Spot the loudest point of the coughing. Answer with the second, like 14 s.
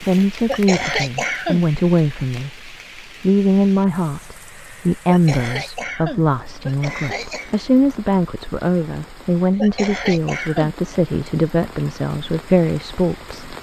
1 s.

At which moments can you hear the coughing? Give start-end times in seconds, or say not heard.
0.5-1.6, 5.0-7.5, 9.6-10.8.